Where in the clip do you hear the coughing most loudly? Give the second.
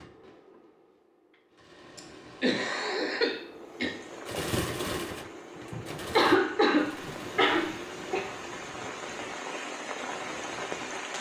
6 s.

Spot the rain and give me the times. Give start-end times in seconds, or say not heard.
3.5-11.1.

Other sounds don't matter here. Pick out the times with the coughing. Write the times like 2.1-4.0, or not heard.
1.9-3.9, 5.7-8.2.